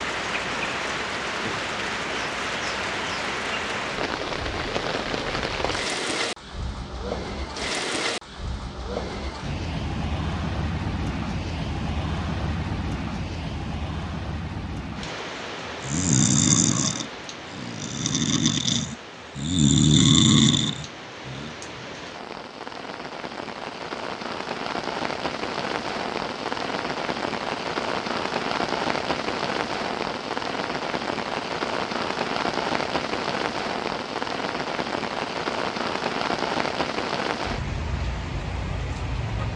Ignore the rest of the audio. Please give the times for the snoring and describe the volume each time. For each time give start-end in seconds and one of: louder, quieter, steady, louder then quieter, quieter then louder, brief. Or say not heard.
15.8-21.5 quieter then louder.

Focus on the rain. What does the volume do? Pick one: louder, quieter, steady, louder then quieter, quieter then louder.
quieter then louder.